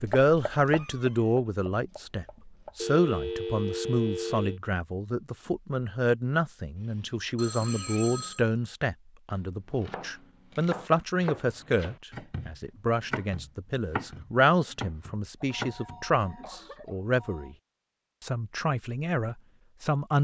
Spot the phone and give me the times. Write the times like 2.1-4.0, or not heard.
2.8-4.6, 7.3-8.4, 15.5-17.6.